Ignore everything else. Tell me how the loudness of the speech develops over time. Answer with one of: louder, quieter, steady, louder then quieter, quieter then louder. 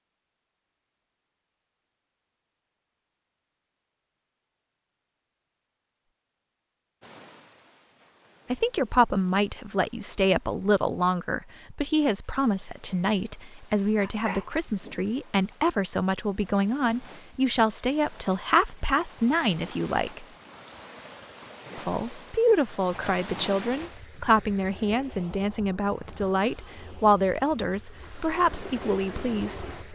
steady.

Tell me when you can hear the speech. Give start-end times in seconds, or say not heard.
8.5-20.2, 21.8-29.7.